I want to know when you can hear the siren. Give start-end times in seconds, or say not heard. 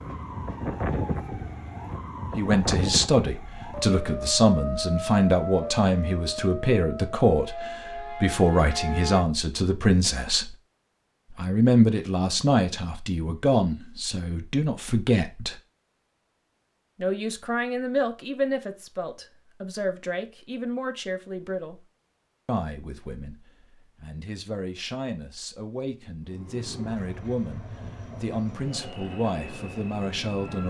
0.0-9.2.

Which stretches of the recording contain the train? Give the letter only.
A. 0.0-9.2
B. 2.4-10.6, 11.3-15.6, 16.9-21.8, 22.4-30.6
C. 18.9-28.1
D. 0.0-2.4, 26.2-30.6
D.